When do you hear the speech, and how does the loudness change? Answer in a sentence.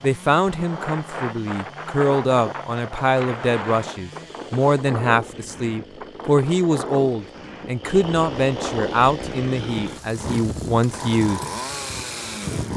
The speech can be heard from 0.0 to 11.4 s, at a steady volume.